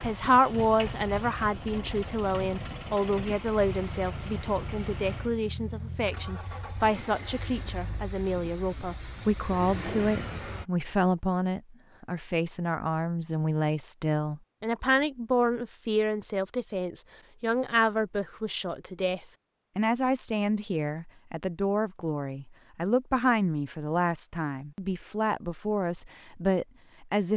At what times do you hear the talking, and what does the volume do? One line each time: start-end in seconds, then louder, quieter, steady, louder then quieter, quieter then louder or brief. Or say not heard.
0.0-27.3 steady.